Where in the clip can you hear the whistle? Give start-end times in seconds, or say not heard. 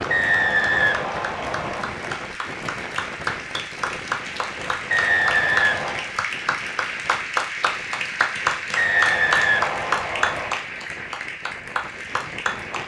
0.1-1.9, 4.9-6.1, 8.8-10.5.